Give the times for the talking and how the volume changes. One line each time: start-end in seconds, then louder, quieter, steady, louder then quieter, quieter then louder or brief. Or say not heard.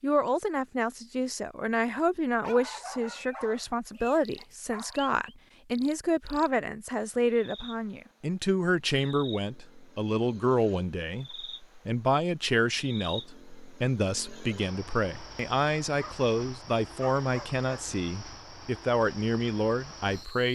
0.0-20.4 steady.